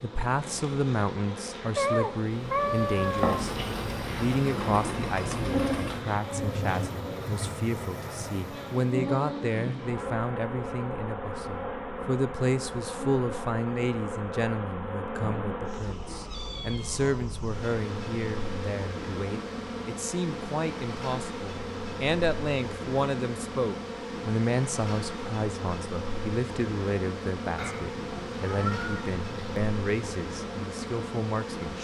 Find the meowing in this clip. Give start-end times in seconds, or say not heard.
1.8-3.4, 15.8-17.2, 27.6-29.6.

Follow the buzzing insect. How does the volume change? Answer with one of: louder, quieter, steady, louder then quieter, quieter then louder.
steady.